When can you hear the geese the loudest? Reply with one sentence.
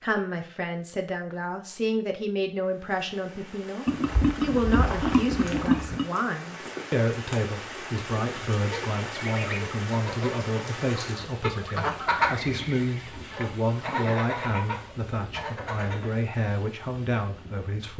The loudest moment of the geese is at 12 seconds.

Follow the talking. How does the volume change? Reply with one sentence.
The loudness of the talking stays about the same.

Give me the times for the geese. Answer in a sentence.
The geese can be heard from 8.6 to 16.2 s.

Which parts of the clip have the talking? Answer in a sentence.
You can hear the talking from 0.0 to 17.9 s.